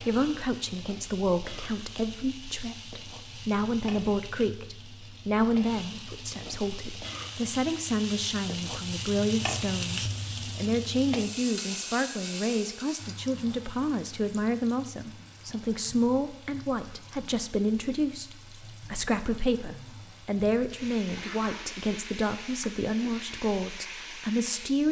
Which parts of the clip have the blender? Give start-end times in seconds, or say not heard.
not heard.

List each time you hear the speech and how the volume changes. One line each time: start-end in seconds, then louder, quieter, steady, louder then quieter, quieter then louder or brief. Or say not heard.
0.0-24.8 steady.